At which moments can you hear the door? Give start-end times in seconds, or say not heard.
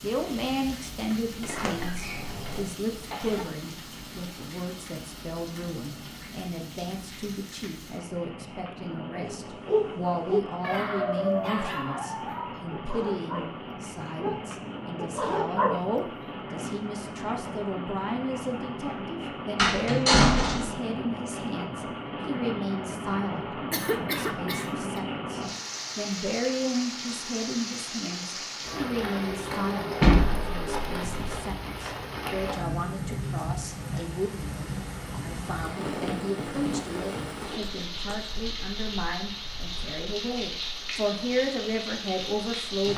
1.4-2.6, 19.6-20.7, 30.0-31.4.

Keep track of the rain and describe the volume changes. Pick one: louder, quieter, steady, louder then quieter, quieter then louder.
louder.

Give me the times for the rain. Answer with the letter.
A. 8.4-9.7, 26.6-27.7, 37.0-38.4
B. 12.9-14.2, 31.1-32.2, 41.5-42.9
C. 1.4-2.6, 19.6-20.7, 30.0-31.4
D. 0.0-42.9
D.